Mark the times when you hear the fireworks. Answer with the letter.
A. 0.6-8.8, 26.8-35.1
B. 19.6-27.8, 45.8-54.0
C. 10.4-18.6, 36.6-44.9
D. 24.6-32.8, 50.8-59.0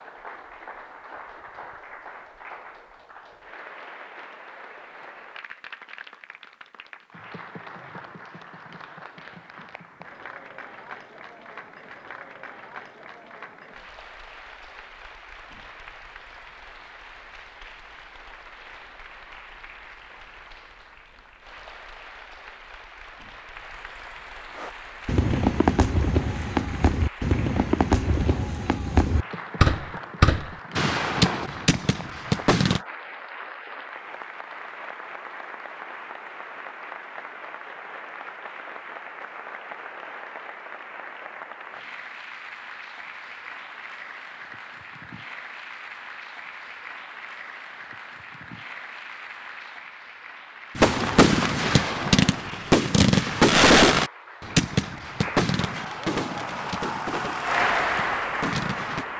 D.